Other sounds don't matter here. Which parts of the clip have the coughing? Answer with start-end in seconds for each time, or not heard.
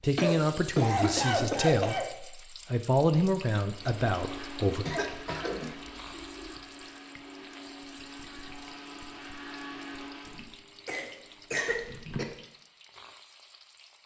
0.1-2.1, 4.8-6.5, 10.2-12.2.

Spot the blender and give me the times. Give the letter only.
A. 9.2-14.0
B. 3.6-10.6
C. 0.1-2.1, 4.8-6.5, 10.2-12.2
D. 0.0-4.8
B.